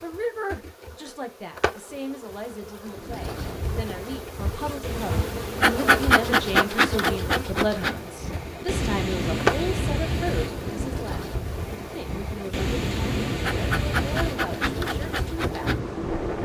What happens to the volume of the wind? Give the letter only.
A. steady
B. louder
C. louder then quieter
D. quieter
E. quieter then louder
B.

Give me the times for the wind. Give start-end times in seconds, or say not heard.
2.9-16.4.